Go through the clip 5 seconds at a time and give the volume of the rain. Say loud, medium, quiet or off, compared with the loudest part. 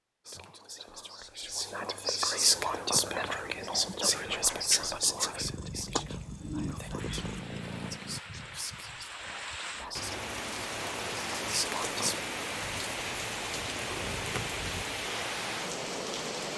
off, medium, loud, loud.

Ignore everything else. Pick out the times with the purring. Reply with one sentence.
You can hear the purring from 2.5 to 8.2 s and from 12.5 to 14.8 s.